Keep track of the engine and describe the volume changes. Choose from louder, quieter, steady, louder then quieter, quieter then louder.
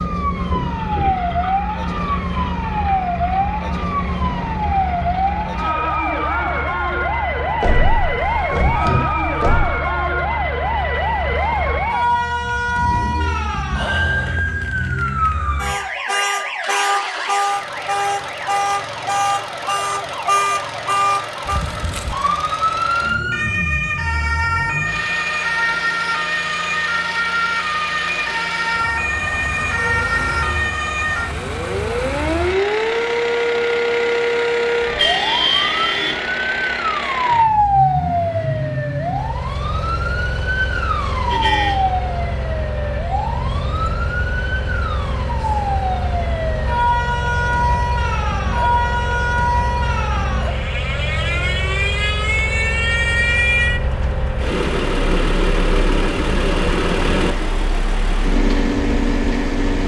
louder.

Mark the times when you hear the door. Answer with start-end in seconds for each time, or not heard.
7.6-9.8.